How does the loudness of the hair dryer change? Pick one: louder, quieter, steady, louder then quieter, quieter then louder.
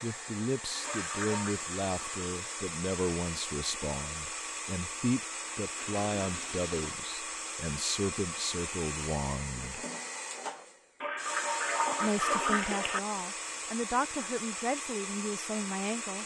steady.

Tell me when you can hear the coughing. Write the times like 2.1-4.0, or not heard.
not heard.